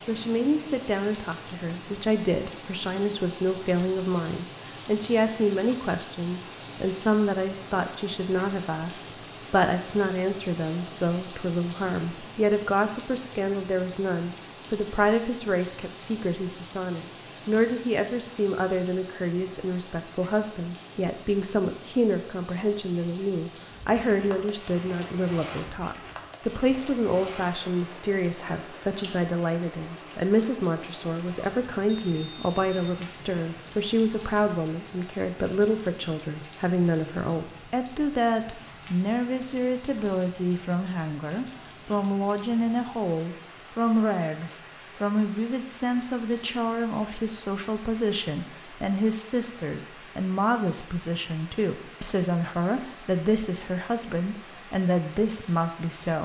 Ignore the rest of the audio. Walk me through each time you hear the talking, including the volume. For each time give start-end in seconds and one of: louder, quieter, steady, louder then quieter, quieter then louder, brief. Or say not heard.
0.0-56.2 steady.